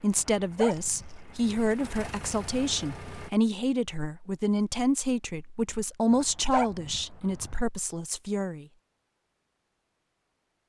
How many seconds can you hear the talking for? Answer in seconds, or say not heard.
9 s.